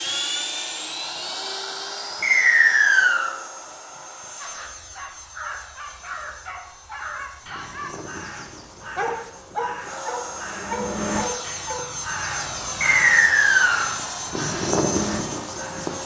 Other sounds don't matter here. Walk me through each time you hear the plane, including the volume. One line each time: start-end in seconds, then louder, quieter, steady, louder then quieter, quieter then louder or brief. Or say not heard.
0.0-16.0 quieter then louder.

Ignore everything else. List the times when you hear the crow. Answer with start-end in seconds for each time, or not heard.
4.5-15.9.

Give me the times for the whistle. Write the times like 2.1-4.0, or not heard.
2.2-3.4, 12.8-13.9.